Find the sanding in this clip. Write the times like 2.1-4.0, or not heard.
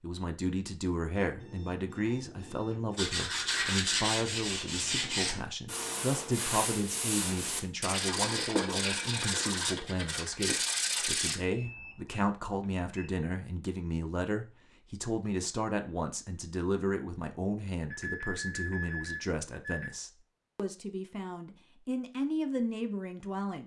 3.0-11.3.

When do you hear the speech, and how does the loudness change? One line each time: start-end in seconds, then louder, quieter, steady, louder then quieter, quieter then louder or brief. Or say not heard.
0.0-23.6 steady.